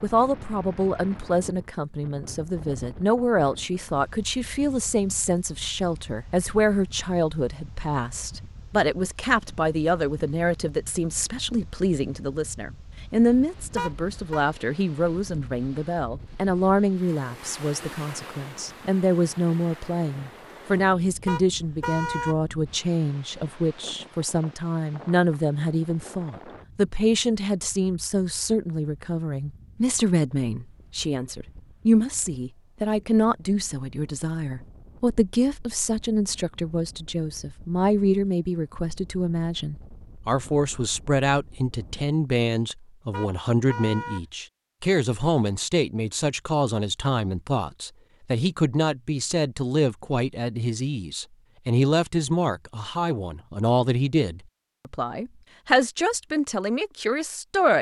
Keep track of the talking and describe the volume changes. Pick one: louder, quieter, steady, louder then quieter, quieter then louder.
steady.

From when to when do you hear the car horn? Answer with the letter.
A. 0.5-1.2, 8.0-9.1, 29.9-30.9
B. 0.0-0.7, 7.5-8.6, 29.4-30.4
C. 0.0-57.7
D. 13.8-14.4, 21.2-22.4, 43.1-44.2
D.